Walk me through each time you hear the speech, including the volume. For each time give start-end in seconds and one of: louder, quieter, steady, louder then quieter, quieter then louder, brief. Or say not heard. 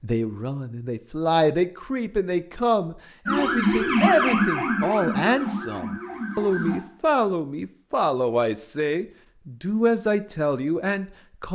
0.0-11.5 steady.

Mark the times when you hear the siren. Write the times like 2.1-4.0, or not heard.
3.2-6.8.